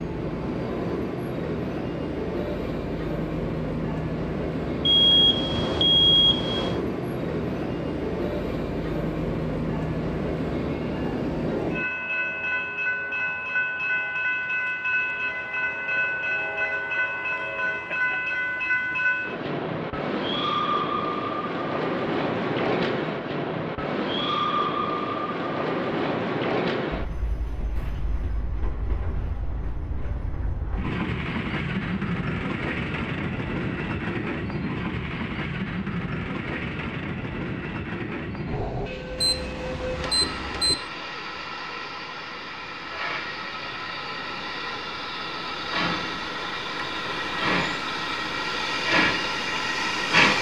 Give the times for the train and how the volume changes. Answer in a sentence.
The train can be heard from 0.0 to 50.3 s, at a steady volume.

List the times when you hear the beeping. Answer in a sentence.
You can hear the beeping from 4.8 to 6.8 s and from 39.1 to 40.8 s.